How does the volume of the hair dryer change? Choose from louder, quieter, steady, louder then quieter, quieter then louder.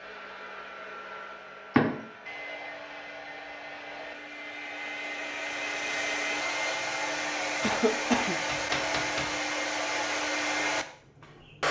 louder.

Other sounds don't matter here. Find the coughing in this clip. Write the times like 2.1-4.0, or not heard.
7.6-8.4.